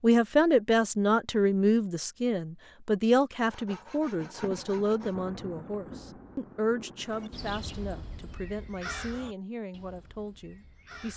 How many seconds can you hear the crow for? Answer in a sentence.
The crow can be heard for 4 seconds in total.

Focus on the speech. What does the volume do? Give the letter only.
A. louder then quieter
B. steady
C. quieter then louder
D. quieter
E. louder
D.